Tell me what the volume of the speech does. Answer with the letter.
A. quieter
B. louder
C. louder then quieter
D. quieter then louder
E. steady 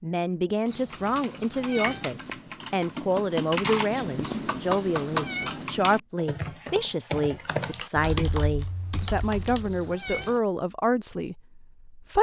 E.